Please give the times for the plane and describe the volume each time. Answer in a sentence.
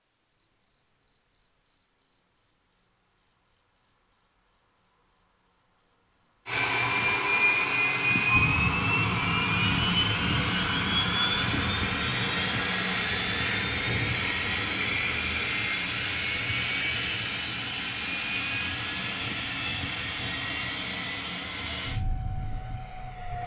The plane can be heard from 6.5 to 23.4 s, getting quieter.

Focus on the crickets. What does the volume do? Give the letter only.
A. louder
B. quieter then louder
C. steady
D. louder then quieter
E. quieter
A.